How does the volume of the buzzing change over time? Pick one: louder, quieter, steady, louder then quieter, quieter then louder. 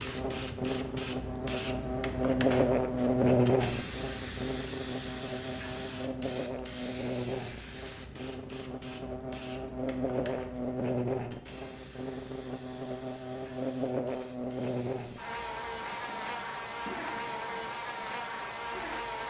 quieter.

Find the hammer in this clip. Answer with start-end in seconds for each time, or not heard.
not heard.